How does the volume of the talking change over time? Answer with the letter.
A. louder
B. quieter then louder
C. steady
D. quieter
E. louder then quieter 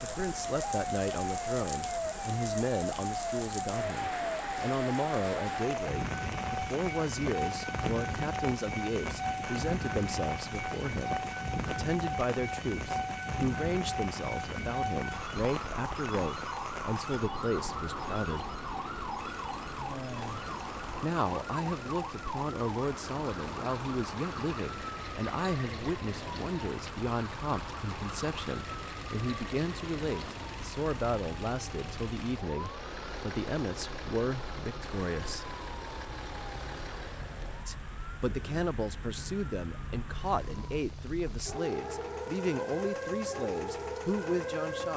C.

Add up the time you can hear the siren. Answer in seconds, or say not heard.
45 s.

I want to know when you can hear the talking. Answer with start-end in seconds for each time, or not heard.
0.0-18.6, 21.0-35.5, 37.6-44.9.